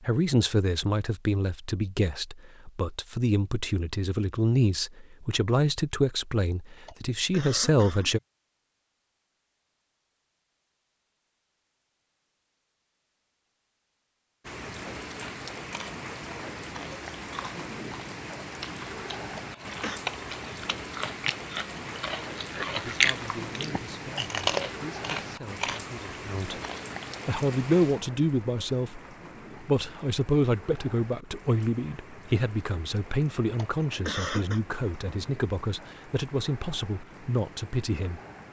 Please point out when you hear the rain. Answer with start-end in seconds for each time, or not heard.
14.4-38.4.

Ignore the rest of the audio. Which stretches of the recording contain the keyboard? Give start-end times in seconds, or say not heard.
not heard.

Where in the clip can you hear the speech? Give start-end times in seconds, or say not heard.
0.0-8.2, 22.8-26.6, 27.2-29.0, 29.6-38.2.